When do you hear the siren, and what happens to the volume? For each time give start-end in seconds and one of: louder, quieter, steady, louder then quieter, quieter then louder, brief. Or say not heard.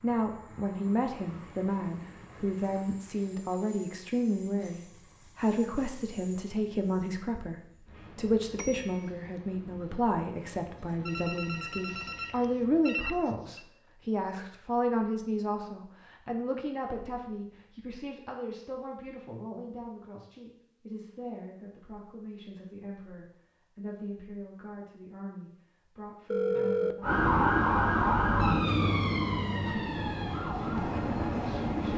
27.0-31.9 quieter.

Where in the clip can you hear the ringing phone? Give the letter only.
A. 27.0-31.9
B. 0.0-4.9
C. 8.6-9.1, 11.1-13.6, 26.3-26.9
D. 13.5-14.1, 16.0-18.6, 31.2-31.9
C.